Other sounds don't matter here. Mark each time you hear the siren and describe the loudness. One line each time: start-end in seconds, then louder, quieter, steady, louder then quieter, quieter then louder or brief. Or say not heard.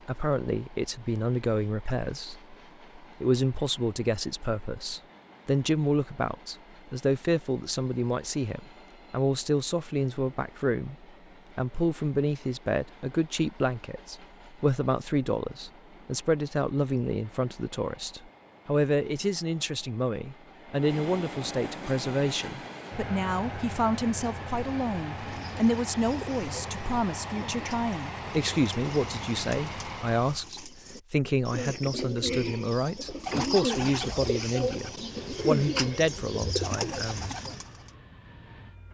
not heard.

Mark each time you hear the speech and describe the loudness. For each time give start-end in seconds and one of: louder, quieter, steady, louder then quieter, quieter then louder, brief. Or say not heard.
0.1-37.5 steady.